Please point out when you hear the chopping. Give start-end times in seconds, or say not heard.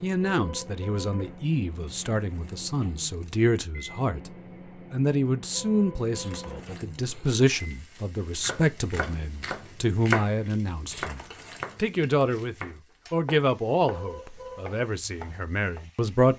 8.3-15.8.